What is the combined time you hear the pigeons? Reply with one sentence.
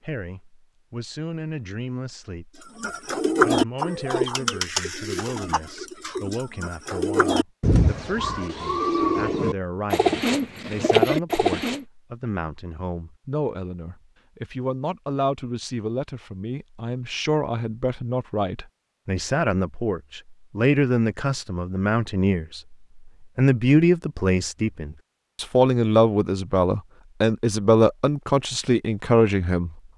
You can hear the pigeons for 9 seconds altogether.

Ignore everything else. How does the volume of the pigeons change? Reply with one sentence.
The volume of the pigeons goes down, then up.